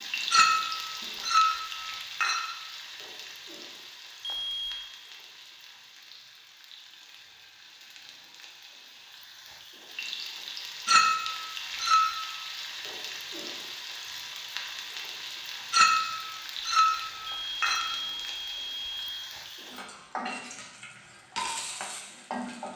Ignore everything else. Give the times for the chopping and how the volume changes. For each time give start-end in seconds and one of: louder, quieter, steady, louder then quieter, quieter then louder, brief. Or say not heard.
not heard.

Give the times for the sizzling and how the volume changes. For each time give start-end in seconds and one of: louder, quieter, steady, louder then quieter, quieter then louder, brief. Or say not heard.
0.0-22.7 quieter then louder.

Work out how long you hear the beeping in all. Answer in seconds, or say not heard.
3 s.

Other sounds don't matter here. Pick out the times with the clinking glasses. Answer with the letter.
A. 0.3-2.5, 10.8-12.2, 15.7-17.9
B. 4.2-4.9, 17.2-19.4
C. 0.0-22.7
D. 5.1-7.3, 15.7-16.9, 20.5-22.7
A.